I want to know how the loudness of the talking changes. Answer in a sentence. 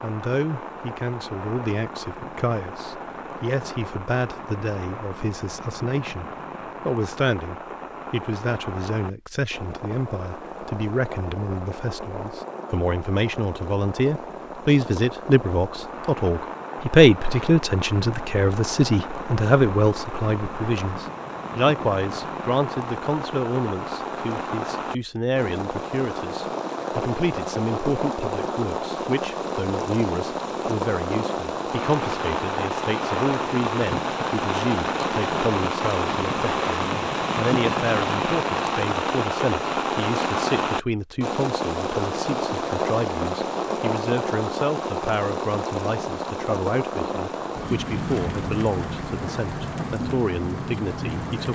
The volume of the talking goes up, then down.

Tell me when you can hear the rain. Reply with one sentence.
The rain can be heard from 0.0 to 51.4 s.